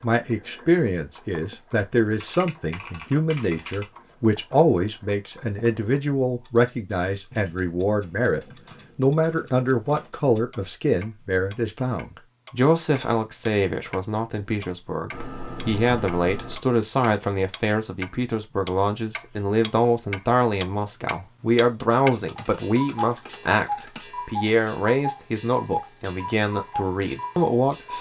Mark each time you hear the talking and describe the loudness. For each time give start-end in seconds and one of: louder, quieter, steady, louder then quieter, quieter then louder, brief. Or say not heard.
0.0-27.9 steady.